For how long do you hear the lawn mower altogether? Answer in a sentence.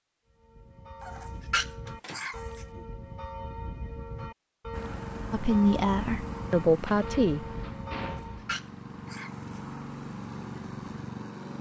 The lawn mower can be heard for 7 seconds in total.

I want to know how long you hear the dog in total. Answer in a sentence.
The dog can be heard for 3 seconds in total.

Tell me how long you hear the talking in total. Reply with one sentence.
You can hear the talking for 2 seconds altogether.